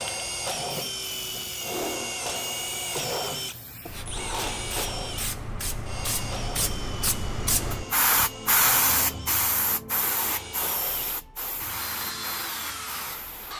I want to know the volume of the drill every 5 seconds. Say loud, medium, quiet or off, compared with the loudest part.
loud, medium, medium.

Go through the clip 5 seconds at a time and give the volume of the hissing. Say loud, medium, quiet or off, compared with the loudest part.
quiet, loud, medium.